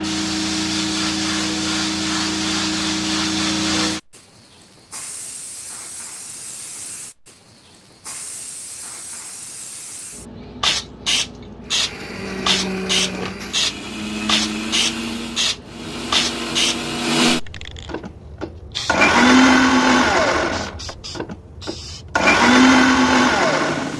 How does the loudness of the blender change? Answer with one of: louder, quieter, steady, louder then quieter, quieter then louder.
louder.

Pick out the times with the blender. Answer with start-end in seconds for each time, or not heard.
11.7-23.9.